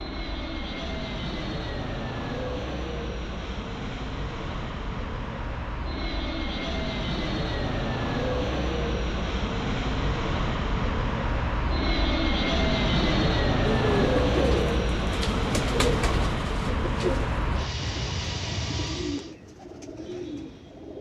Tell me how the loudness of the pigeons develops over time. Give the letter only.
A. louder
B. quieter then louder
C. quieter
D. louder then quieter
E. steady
C.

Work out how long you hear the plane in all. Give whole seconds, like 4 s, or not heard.
19 s.